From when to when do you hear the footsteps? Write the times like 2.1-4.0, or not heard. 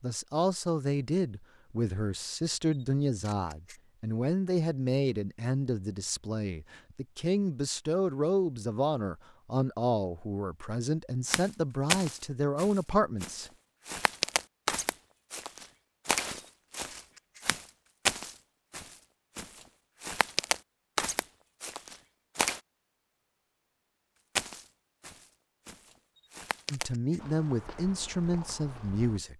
11.2-22.6, 24.4-29.2.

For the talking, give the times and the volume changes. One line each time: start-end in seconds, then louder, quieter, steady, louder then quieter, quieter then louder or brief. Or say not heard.
0.0-13.5 steady
26.7-29.3 brief.